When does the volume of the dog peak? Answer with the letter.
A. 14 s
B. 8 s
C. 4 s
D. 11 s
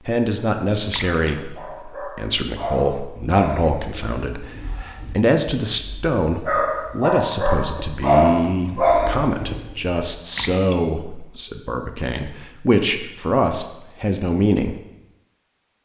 B.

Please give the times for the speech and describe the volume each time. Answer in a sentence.
You can hear the speech from 0.1 to 14.8 s, at a steady volume.